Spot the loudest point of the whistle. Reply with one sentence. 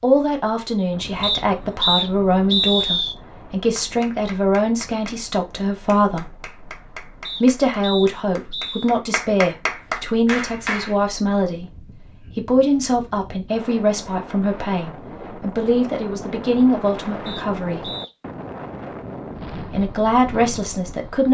The loudest moment of the whistle is at 3 seconds.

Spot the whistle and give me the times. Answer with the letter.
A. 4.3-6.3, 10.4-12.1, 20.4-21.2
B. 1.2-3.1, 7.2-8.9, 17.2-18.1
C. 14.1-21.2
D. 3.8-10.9
B.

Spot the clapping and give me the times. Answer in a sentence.
You can hear the clapping from 3.8 to 10.9 s.